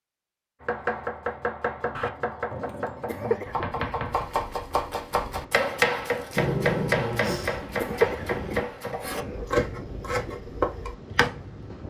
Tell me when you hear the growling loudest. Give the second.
7 s.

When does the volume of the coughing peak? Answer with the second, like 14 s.
8 s.